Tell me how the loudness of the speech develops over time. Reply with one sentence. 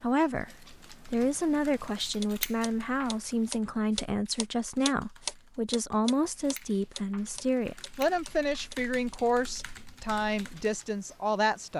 The loudness of the speech stays about the same.